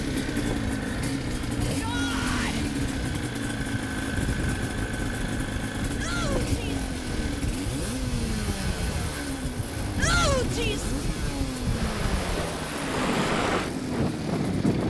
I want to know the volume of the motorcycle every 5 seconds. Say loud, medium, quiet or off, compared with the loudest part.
loud, loud, medium.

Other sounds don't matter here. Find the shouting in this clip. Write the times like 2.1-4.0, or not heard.
1.6-2.6, 6.0-6.8, 9.9-10.9.